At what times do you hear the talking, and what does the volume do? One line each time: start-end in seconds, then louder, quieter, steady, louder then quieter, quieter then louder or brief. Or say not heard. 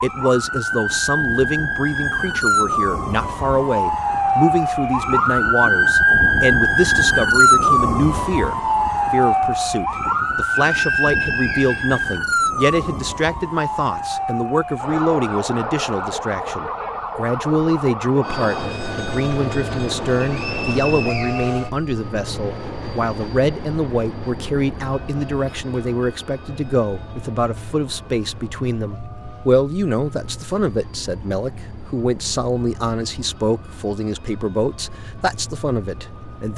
0.0-36.5 steady.